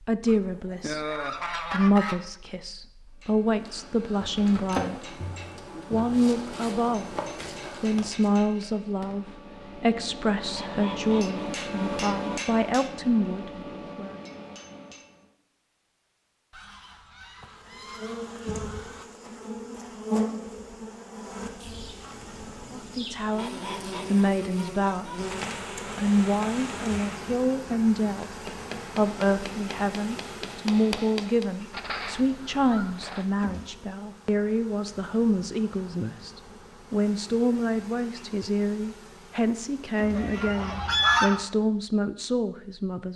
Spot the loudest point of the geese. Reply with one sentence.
The volume of the geese peaks at 41 seconds.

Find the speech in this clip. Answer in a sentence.
You can hear the speech from 0.0 to 5.0 s, from 5.9 to 7.1 s, from 7.8 to 14.2 s and from 22.7 to 43.1 s.